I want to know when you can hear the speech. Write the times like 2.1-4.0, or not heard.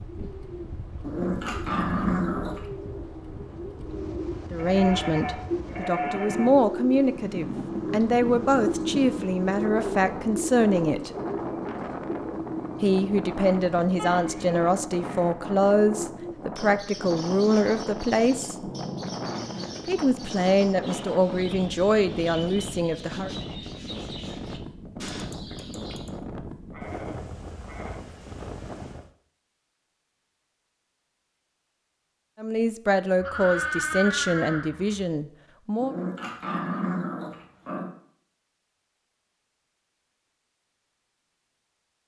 4.5-11.1, 12.8-18.7, 19.9-23.3, 32.4-36.0.